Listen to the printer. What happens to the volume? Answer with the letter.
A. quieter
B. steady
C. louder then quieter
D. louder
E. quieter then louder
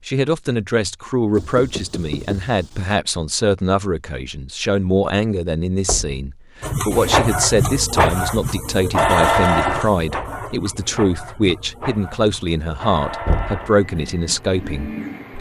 A.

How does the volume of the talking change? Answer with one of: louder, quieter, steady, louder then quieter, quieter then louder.
steady.